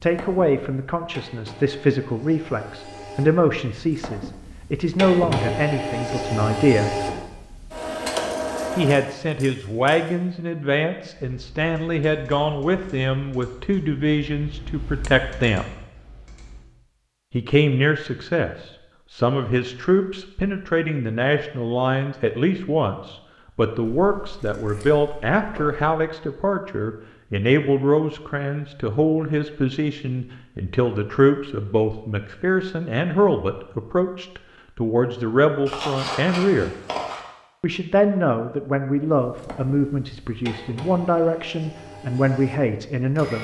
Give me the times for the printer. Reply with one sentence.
You can hear the printer from 0.0 to 9.1 s and from 39.2 to 43.3 s.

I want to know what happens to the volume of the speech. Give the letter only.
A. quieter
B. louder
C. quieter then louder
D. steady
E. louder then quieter
D.